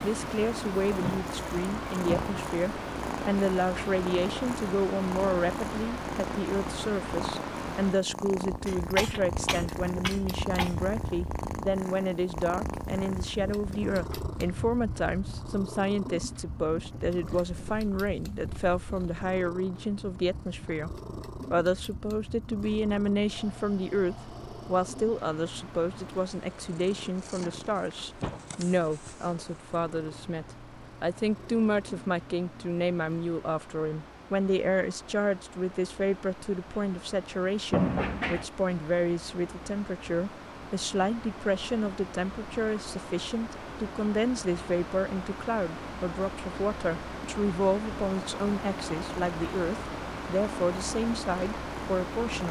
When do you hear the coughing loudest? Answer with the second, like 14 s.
9 s.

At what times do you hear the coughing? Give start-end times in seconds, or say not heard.
8.7-10.8.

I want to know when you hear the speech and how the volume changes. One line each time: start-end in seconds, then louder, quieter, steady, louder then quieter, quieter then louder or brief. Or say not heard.
0.0-52.4 steady.